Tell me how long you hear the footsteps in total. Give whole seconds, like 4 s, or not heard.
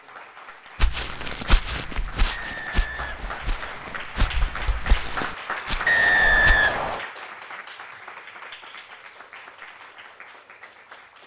6 s.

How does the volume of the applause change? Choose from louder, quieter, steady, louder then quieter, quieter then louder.
louder then quieter.